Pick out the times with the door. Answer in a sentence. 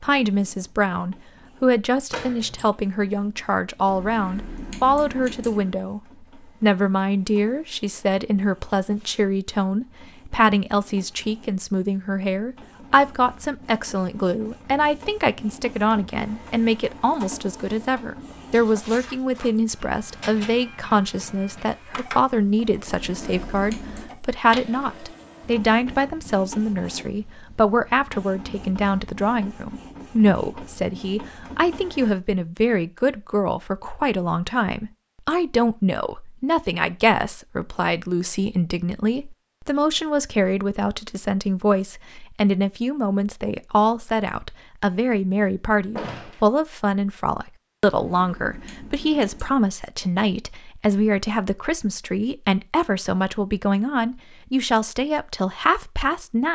You can hear the door from 2.1 to 2.8 s and from 46.0 to 46.5 s.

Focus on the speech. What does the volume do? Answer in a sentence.
The volume of the speech stays about the same.